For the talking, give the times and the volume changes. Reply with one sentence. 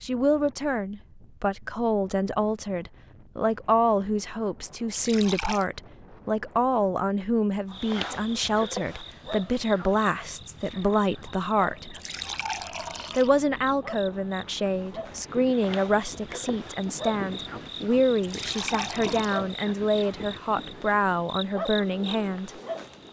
The talking can be heard from 0.0 to 11.9 s, at a steady volume; and from 13.2 to 22.5 s, at a steady volume.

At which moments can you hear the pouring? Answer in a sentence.
You can hear the pouring from 4.9 to 5.7 s, from 11.9 to 13.3 s and from 18.2 to 19.4 s.